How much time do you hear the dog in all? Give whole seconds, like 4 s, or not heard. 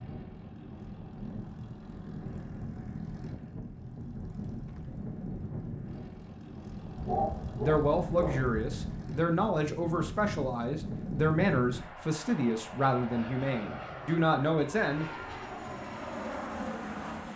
2 s.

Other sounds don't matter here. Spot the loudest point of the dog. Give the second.
7 s.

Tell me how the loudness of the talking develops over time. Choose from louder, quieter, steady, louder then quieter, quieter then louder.
steady.